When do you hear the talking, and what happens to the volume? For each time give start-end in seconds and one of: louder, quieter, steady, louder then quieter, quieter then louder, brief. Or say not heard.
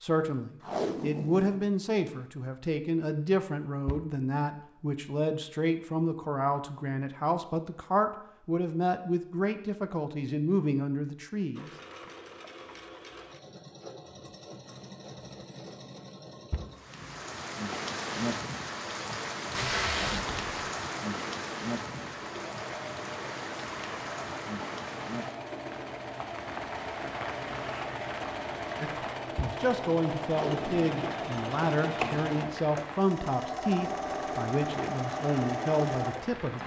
0.0-11.7 steady
28.8-36.6 steady.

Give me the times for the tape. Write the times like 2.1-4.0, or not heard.
0.6-2.1, 19.5-20.6, 30.2-31.1.